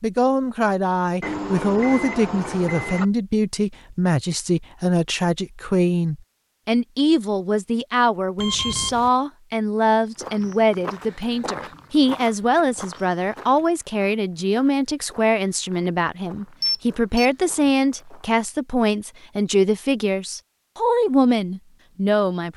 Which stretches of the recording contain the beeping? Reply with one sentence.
The beeping can be heard from 1.2 to 3.0 s, from 8.3 to 9.1 s and from 16.6 to 17.7 s.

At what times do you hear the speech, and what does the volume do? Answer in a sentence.
You can hear the speech from 0.0 to 22.5 s, at a steady volume.